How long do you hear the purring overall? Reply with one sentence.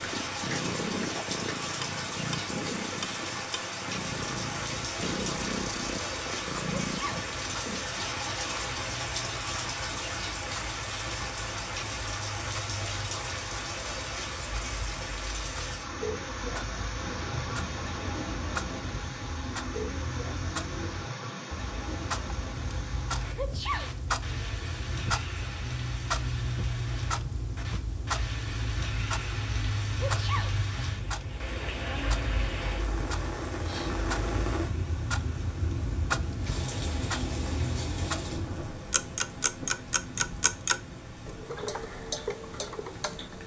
The purring can be heard for 8 seconds in total.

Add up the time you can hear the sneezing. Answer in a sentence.
You can hear the sneezing for 2 seconds altogether.